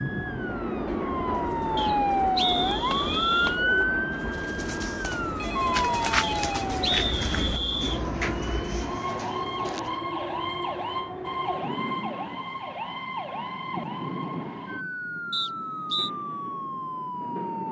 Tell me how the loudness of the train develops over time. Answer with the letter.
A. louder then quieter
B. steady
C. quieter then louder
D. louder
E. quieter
E.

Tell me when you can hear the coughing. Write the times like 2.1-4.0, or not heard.
not heard.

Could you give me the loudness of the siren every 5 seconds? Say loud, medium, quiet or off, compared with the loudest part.
loud, loud, medium, medium.